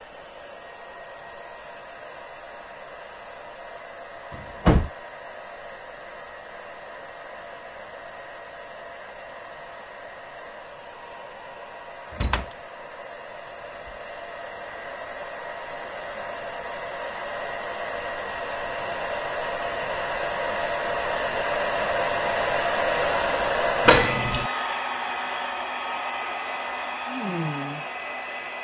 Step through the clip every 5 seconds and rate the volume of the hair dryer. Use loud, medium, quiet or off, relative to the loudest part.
quiet, quiet, quiet, medium, loud, medium.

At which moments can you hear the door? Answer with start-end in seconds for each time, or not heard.
4.3-4.9, 12.1-12.5, 23.9-24.5.